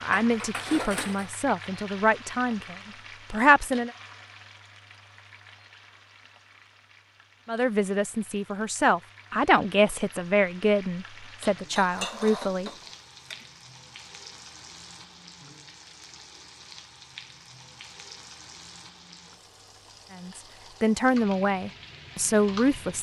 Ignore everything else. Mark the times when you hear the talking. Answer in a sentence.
The talking can be heard from 0.0 to 3.9 s, from 7.5 to 12.7 s and from 20.1 to 22.9 s.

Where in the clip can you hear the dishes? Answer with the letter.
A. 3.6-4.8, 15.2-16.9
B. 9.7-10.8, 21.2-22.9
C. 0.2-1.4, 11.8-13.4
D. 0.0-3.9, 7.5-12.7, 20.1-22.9
C.